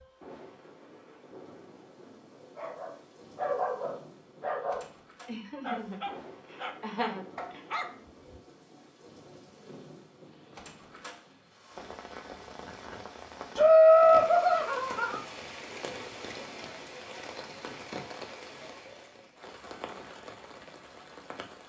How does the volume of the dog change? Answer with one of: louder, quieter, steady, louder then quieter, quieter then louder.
quieter.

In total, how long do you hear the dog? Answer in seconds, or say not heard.
6 s.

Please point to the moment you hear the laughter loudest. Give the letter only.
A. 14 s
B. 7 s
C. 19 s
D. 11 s
A.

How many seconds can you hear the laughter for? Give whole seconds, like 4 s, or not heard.
4 s.